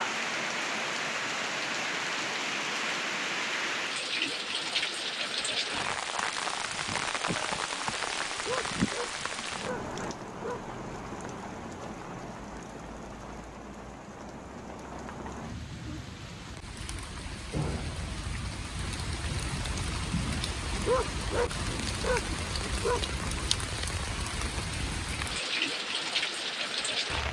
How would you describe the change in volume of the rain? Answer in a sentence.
The volume of the rain goes down, then up.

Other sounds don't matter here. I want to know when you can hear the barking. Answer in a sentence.
You can hear the barking from 8.3 to 10.6 s and from 20.8 to 23.1 s.